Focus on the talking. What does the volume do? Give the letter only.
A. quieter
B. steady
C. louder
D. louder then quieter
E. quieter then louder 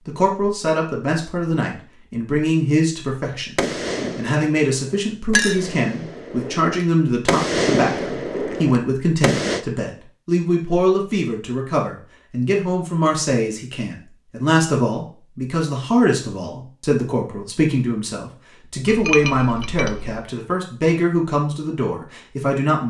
B.